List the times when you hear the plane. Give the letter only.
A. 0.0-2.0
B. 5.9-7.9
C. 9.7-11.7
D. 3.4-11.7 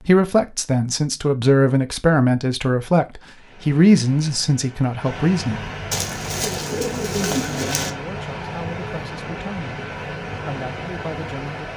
D.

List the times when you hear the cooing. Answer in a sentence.
The cooing can be heard from 5.9 to 7.9 s.